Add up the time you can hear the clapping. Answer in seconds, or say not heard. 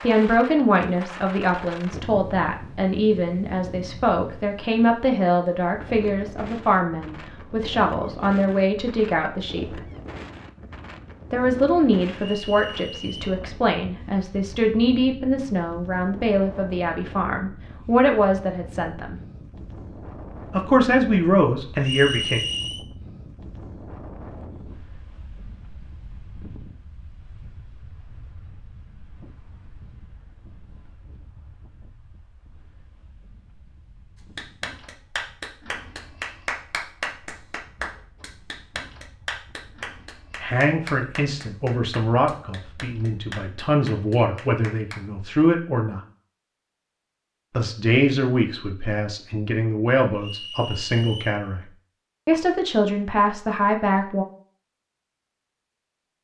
11 s.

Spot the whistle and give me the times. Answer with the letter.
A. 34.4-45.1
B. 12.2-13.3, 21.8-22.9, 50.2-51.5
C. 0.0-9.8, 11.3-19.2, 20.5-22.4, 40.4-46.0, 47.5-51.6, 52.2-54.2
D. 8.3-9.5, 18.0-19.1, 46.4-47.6
B.